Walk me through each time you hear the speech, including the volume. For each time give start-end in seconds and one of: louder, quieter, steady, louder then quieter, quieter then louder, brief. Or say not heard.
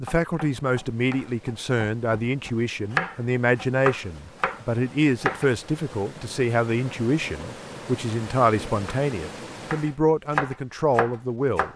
0.0-11.7 steady.